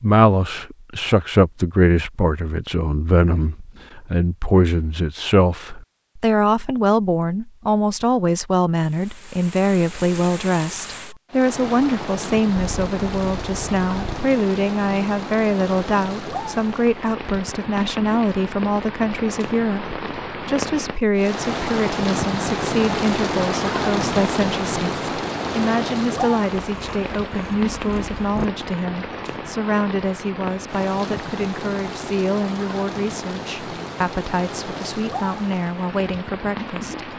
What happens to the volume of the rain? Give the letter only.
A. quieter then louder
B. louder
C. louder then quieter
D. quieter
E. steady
C.